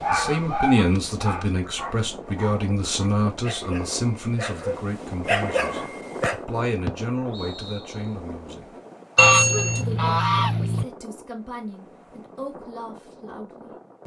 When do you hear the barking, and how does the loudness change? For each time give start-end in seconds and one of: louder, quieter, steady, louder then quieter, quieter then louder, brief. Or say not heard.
0.0-6.4 quieter then louder.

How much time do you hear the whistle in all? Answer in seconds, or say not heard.
2 s.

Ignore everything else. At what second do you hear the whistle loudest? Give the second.
7 s.